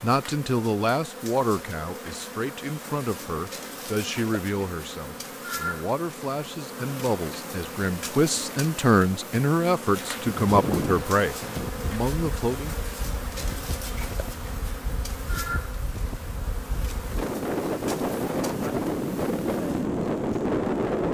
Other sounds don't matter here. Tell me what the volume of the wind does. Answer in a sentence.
The volume of the wind goes down, then up.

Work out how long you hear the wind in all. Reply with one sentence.
The wind can be heard for 11 seconds in total.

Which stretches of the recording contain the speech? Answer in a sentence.
The speech can be heard from 0.0 to 12.8 s.